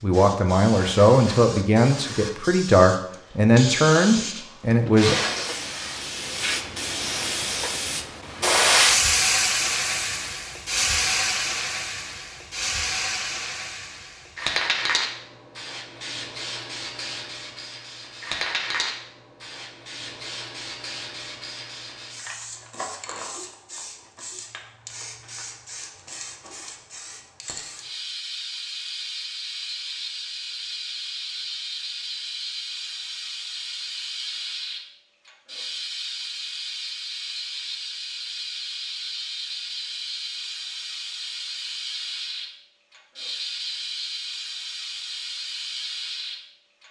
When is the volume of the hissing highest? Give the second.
9 s.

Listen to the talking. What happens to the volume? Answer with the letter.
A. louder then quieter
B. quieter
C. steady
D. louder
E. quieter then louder
C.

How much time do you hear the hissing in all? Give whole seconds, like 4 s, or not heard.
47 s.